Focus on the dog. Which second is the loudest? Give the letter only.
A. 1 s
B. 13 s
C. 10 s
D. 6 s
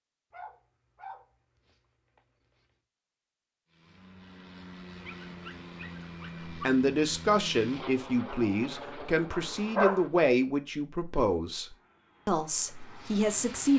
C.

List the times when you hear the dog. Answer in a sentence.
You can hear the dog from 0.3 to 2.6 s, from 5.0 to 6.5 s and from 9.3 to 10.1 s.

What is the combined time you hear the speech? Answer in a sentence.
You can hear the speech for 7 seconds altogether.